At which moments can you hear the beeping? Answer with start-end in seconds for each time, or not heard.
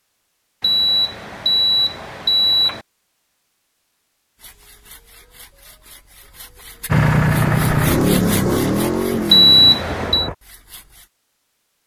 0.6-2.9, 9.3-10.3.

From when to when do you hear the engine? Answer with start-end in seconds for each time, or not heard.
6.8-10.3.